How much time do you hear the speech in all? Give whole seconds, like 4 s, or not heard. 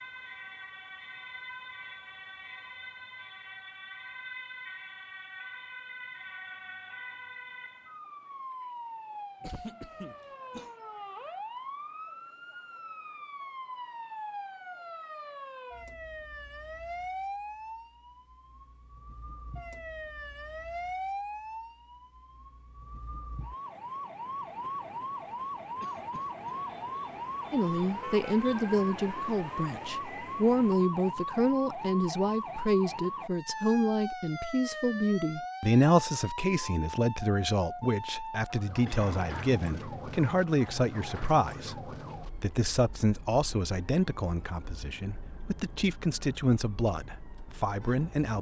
21 s.